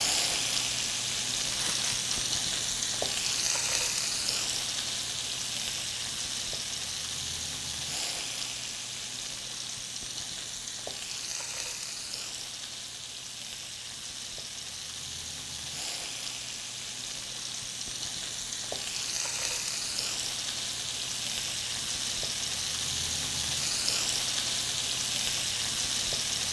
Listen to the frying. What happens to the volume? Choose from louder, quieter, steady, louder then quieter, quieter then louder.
quieter then louder.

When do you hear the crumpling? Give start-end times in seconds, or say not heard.
1.5-2.2.